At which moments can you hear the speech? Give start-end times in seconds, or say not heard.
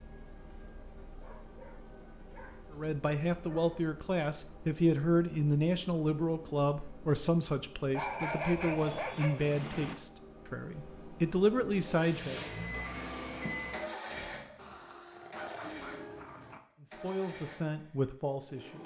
2.7-12.4, 16.8-18.8.